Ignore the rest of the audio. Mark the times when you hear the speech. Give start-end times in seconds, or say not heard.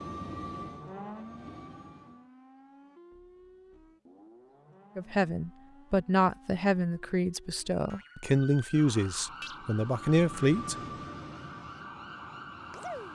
5.0-10.8.